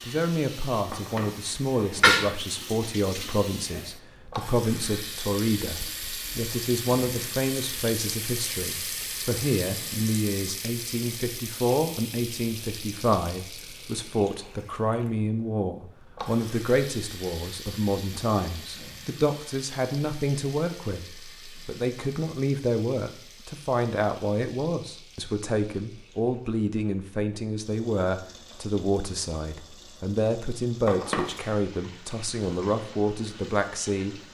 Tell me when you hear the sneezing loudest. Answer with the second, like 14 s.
2 s.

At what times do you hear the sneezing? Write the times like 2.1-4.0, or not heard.
0.9-2.3, 30.9-31.6.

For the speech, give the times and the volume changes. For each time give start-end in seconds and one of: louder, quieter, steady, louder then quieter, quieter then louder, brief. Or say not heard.
0.0-34.1 steady.